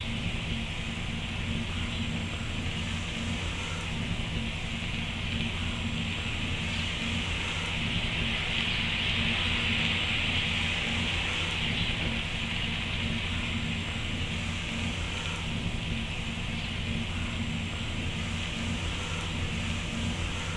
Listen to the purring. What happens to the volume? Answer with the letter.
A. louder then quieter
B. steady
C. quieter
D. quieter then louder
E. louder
B.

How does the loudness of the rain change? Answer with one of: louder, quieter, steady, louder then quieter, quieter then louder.
louder then quieter.